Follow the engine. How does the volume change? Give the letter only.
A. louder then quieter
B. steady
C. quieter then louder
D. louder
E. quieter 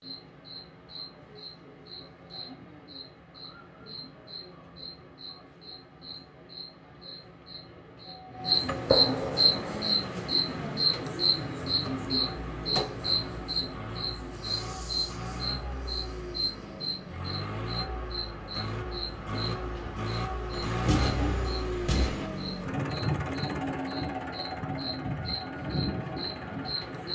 D.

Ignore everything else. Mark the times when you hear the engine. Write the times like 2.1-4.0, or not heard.
9.5-27.1.